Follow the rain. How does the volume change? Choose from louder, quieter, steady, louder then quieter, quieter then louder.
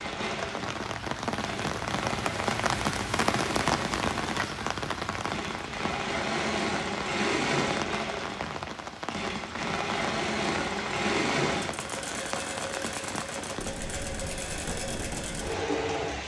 quieter.